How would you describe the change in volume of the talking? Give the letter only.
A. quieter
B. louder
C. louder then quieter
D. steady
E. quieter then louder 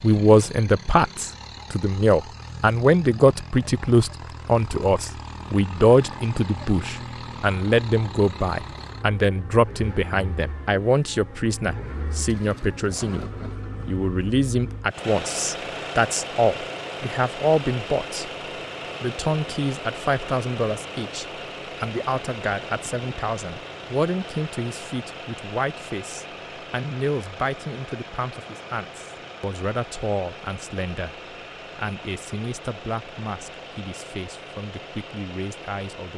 A.